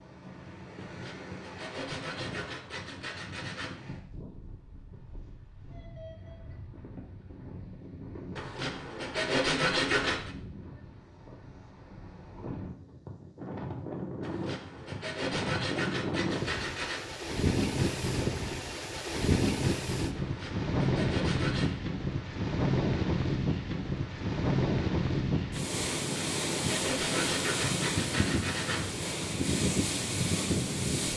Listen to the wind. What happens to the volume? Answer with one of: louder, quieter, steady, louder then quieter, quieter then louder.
louder.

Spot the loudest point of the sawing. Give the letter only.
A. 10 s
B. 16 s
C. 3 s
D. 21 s
A.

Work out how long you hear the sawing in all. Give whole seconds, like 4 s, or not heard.
12 s.